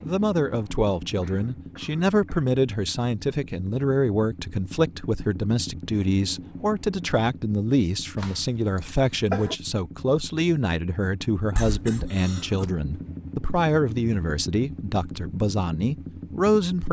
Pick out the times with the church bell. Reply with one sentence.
You can't hear the church bell here.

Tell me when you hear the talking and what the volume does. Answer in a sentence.
You can hear the talking from 0.0 to 16.8 s, at a steady volume.